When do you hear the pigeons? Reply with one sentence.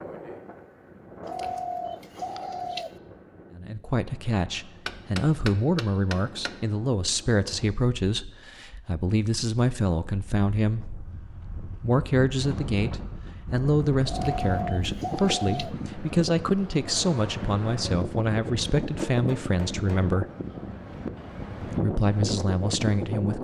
You can hear the pigeons from 1.2 to 3.0 s and from 14.1 to 15.8 s.